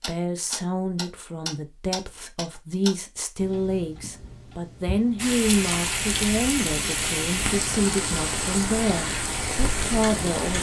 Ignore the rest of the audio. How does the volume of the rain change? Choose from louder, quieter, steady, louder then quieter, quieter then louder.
steady.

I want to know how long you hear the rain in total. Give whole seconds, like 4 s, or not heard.
5 s.